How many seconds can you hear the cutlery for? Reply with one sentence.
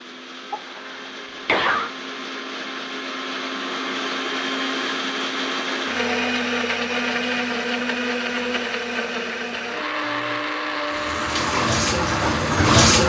The cutlery can't be heard in this clip.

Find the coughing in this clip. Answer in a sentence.
The coughing can be heard from 0.5 to 1.9 s.